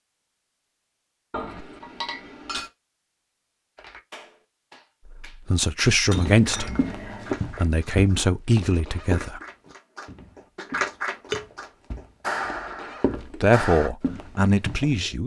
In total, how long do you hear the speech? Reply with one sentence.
The speech can be heard for 5 seconds in total.